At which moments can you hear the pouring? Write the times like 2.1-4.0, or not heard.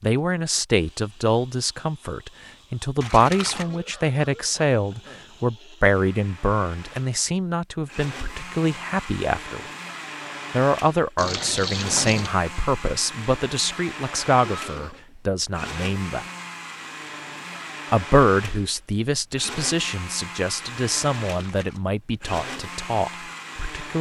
3.0-3.6, 11.2-12.3, 21.2-21.8.